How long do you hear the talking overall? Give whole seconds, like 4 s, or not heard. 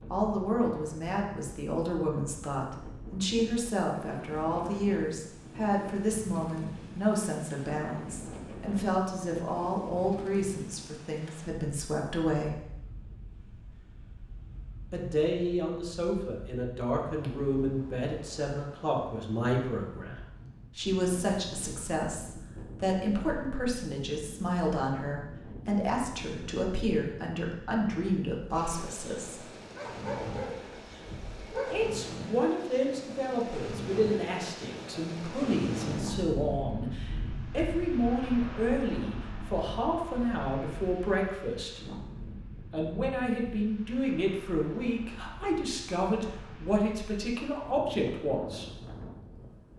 43 s.